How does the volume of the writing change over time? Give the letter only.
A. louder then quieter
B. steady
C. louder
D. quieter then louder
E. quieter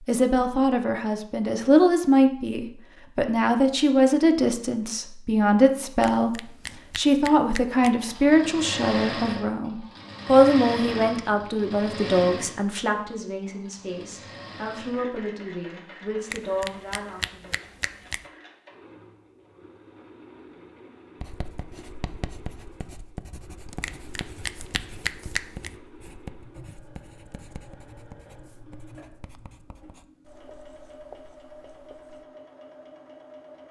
E.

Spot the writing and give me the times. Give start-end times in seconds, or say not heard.
21.2-32.2.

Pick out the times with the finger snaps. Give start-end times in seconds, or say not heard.
6.0-8.0, 16.3-18.2, 23.8-25.7.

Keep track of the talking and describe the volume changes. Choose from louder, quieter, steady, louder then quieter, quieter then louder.
quieter.